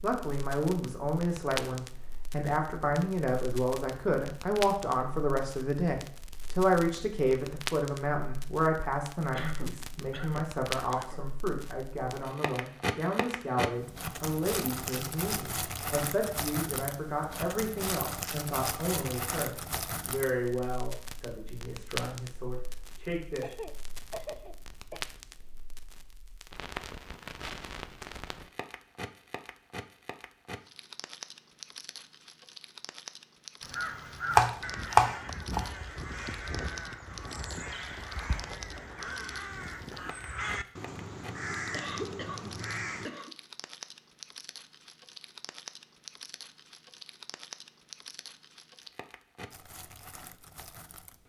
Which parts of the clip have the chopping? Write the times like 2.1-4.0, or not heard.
34.3-35.7.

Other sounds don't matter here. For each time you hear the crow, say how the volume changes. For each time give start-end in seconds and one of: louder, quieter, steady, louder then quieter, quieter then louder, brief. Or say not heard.
33.6-43.1 steady.